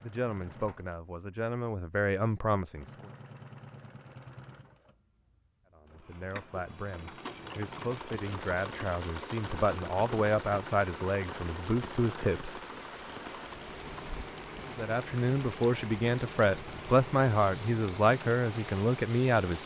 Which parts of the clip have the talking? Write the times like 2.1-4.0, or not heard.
0.0-3.1, 5.8-12.6, 14.8-19.6.